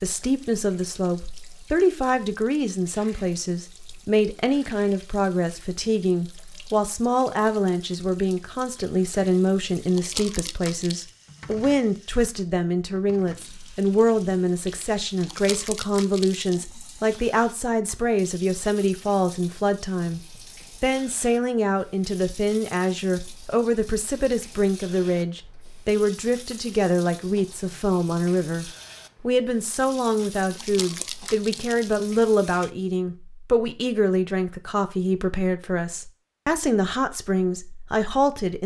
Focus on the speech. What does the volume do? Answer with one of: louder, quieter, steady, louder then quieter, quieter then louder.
steady.